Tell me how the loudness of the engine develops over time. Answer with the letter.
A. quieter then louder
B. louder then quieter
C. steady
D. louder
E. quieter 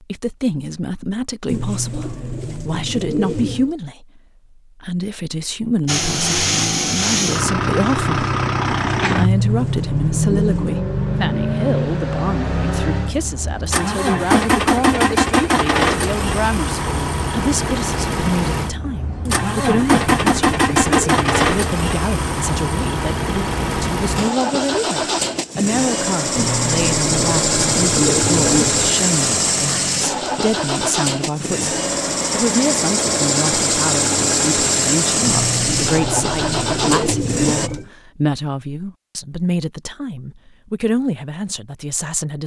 C.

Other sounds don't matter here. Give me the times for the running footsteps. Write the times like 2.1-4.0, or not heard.
not heard.